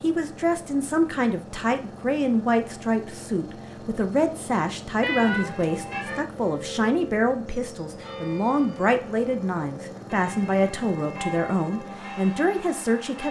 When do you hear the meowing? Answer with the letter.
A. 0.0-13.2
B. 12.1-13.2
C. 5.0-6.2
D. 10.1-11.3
C.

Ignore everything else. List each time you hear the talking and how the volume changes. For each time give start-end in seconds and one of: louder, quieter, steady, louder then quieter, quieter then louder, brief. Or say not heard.
0.0-13.2 steady.